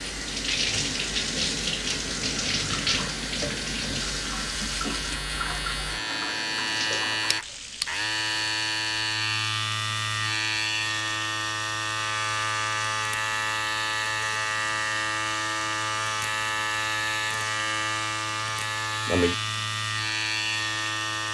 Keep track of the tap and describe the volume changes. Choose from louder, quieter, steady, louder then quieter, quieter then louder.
quieter.